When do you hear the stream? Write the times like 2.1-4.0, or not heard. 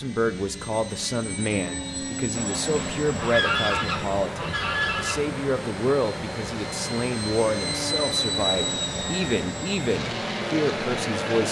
2.3-11.4.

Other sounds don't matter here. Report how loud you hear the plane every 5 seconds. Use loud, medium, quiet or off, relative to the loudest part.
medium, loud, loud.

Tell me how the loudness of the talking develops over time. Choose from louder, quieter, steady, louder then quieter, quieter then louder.
steady.